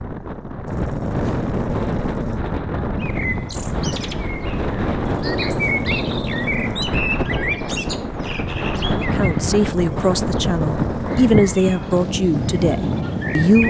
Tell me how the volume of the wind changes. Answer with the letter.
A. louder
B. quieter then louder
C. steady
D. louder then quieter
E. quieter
C.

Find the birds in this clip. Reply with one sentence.
The birds can be heard from 3.0 to 13.6 s.